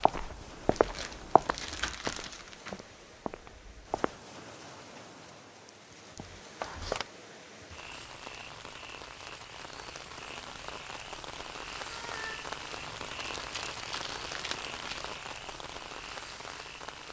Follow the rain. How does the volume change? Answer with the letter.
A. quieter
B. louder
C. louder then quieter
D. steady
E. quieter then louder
B.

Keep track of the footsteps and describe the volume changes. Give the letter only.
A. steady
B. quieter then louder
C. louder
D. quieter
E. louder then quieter
D.